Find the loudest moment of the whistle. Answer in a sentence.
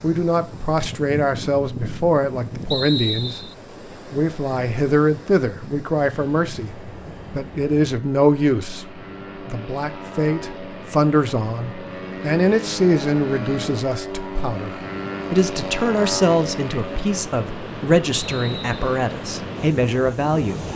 The volume of the whistle peaks at 3 seconds.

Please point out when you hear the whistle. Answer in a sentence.
You can hear the whistle from 2.7 to 3.5 s and from 18.1 to 19.0 s.